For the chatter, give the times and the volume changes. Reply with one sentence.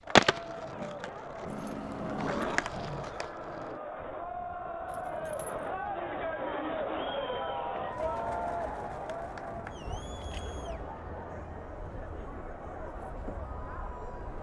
The chatter can be heard from 0.0 to 14.3 s, getting louder then quieter.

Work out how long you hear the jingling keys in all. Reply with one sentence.
The jingling keys can be heard for 3 seconds in total.